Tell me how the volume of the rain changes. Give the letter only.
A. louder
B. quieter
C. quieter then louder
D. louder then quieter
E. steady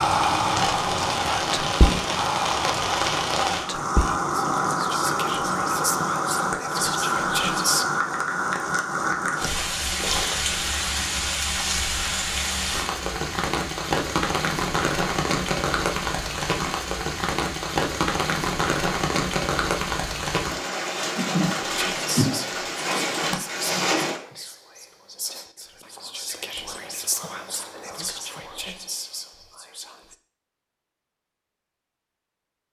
E.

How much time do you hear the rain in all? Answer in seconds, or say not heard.
24 s.